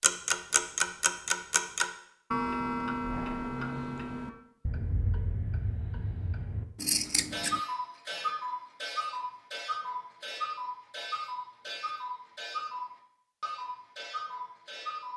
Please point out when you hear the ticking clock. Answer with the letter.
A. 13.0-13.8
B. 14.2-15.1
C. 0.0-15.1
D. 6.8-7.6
C.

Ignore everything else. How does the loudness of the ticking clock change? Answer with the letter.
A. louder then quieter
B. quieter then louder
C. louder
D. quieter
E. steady
D.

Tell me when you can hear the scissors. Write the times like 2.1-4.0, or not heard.
6.8-7.6.